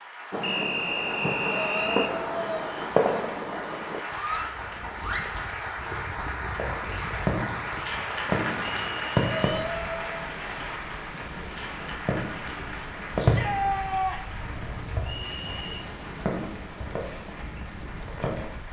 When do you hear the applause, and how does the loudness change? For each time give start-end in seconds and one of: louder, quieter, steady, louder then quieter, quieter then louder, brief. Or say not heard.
0.0-18.6 louder then quieter.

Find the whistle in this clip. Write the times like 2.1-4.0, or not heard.
0.4-2.1, 8.8-9.5, 15.0-15.8.